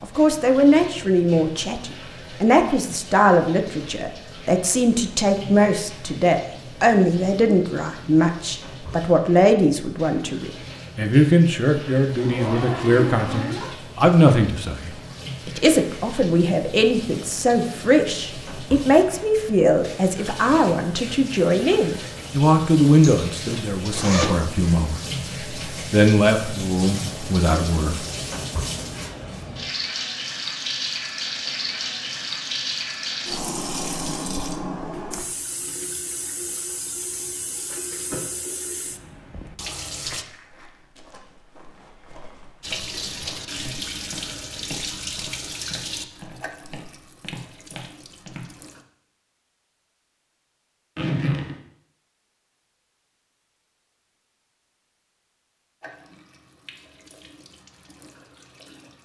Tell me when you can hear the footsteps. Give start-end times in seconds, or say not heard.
40.0-48.5.